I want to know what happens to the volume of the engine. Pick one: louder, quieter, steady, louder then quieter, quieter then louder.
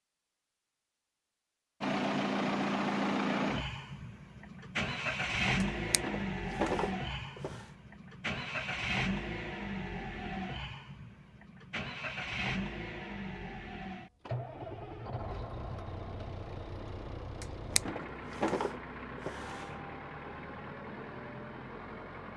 quieter.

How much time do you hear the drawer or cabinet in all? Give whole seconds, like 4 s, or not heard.
4 s.